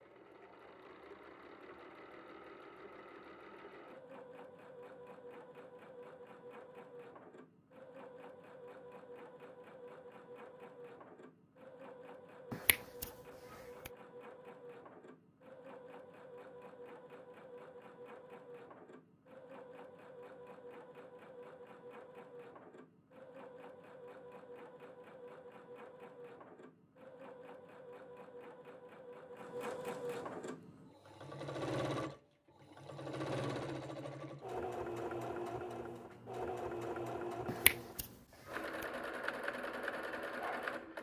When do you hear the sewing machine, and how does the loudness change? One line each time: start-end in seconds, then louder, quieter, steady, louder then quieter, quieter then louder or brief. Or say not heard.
0.0-40.9 louder.